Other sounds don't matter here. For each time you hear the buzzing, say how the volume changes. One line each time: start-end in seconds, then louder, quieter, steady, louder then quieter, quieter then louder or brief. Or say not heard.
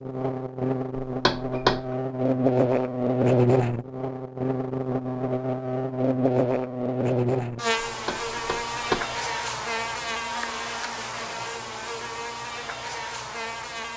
0.0-13.9 quieter.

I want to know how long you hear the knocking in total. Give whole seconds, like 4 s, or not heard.
2 s.